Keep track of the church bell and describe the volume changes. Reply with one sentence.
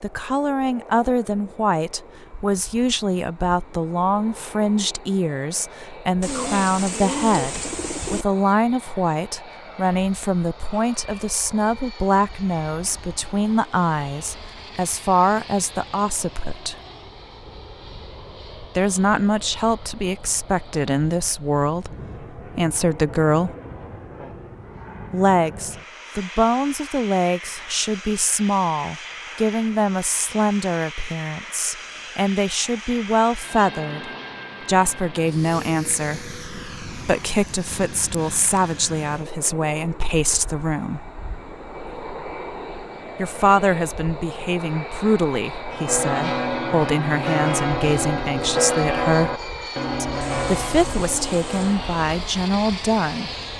The volume of the church bell goes down.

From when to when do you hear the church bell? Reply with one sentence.
The church bell can be heard from 45.5 to 52.0 s.